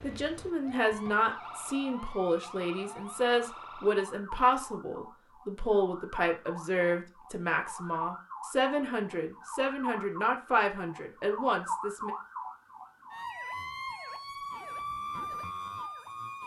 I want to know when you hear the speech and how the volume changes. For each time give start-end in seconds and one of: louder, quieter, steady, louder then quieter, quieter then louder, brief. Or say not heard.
0.0-12.1 steady.